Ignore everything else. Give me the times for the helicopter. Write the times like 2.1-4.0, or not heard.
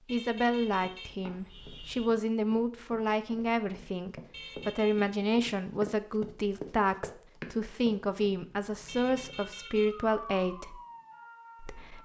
not heard.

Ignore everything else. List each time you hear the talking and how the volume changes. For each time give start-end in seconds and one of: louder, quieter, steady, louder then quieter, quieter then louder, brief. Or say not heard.
0.1-10.8 steady
11.6-12.0 brief.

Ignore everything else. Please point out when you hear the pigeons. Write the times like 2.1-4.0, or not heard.
not heard.